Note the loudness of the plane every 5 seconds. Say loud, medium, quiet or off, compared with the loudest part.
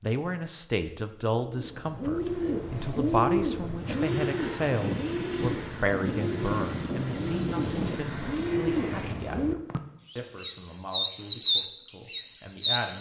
loud, loud, off.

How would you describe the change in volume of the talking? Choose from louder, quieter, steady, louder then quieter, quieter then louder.
quieter.